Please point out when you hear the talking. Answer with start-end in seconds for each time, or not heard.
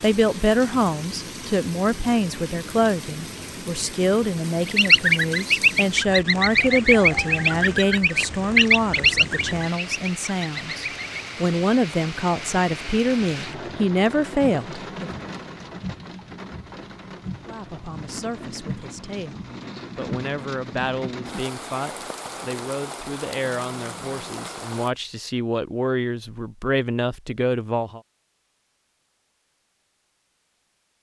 0.0-15.1, 17.4-28.0.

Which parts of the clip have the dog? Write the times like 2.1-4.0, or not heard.
not heard.